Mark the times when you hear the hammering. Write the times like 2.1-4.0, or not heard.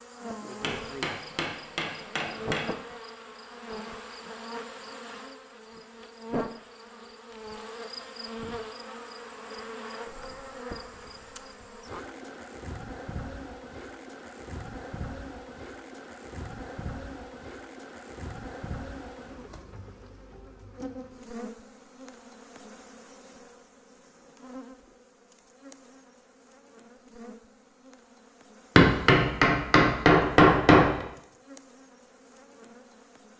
0.6-2.6, 28.8-31.1.